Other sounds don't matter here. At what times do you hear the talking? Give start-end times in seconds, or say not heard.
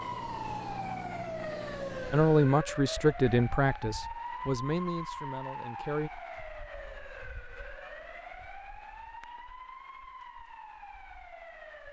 2.1-6.1.